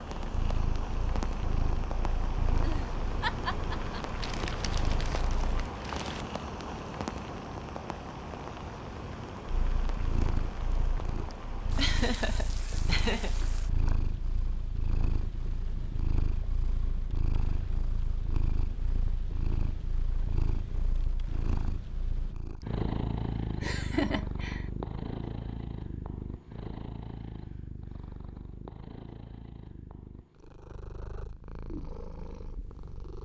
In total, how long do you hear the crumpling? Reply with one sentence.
The crumpling can be heard for 2 seconds in total.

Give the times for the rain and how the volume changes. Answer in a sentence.
You can hear the rain from 0.0 to 22.4 s, getting quieter.